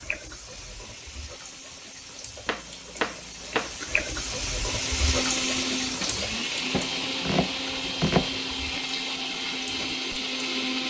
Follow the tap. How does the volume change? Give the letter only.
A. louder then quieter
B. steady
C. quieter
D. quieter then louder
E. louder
A.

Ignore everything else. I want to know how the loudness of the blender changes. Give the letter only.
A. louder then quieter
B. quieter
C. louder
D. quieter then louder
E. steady
C.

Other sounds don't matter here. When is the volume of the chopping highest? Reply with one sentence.
The loudest moment of the chopping is at 8 seconds.